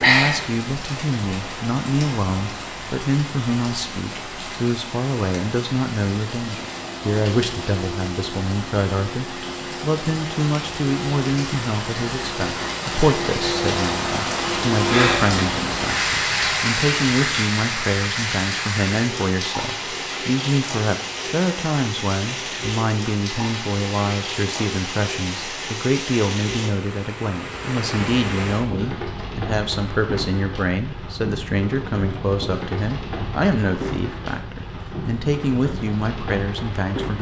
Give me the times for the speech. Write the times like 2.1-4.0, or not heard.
0.1-37.1.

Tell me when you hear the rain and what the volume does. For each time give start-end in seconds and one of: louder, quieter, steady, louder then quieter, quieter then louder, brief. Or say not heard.
0.0-37.1 louder then quieter.